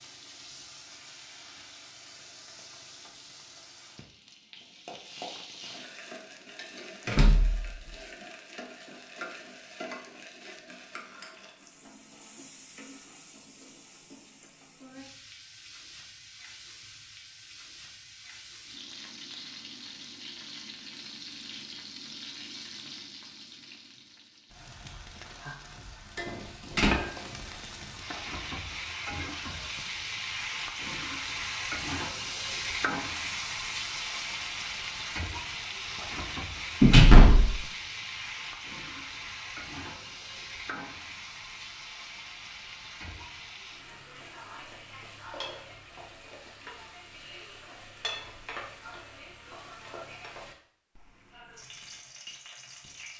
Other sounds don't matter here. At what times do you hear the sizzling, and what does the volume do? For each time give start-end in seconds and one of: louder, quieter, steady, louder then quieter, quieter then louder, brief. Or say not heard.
0.0-53.1 louder then quieter.